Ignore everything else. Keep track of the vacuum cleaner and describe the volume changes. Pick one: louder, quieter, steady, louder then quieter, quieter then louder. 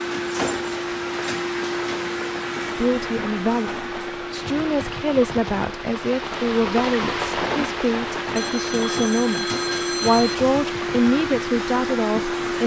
quieter then louder.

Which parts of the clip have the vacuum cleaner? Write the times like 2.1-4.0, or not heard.
0.0-12.6.